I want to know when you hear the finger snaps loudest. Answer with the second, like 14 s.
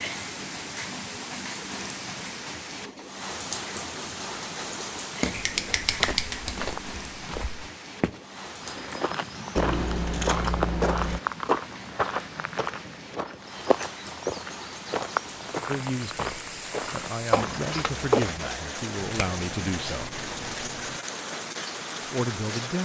6 s.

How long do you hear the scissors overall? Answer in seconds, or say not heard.
5 s.